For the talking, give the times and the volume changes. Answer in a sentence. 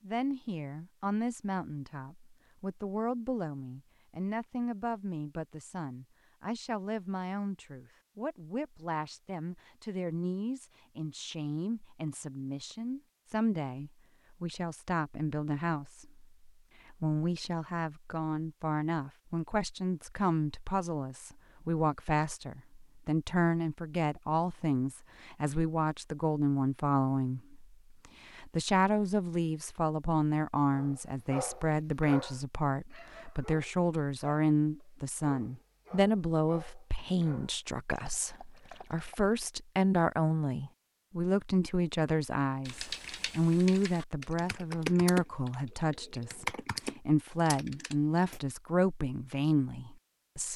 You can hear the talking from 0.0 to 50.5 s, getting louder.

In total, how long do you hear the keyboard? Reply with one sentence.
You can hear the keyboard for 6 seconds altogether.